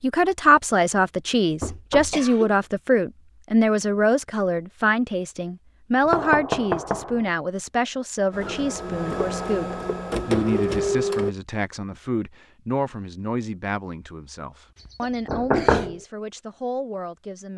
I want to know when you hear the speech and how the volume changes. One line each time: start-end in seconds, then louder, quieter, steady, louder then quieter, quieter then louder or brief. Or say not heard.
0.0-17.5 quieter.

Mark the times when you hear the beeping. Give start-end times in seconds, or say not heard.
not heard.